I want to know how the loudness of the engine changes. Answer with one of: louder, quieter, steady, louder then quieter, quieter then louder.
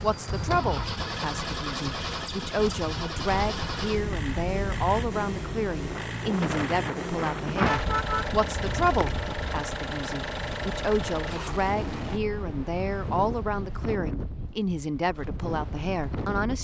steady.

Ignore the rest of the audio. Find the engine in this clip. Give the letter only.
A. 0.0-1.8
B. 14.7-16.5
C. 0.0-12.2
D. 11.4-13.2
C.